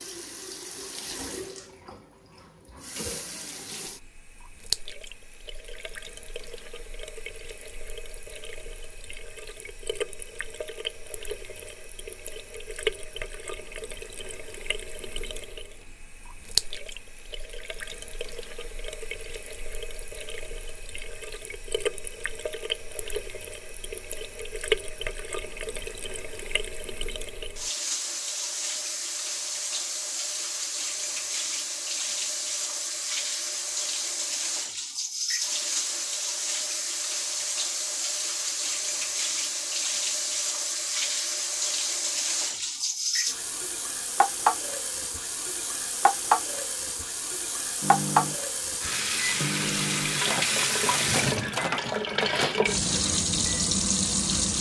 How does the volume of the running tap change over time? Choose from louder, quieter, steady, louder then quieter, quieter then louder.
louder.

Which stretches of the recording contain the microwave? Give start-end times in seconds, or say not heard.
47.8-54.5.